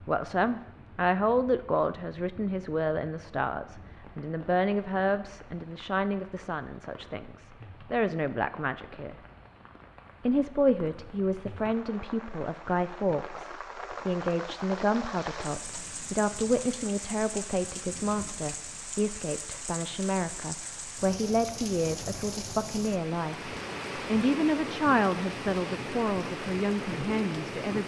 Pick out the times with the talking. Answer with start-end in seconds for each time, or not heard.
0.1-9.2, 10.2-27.8.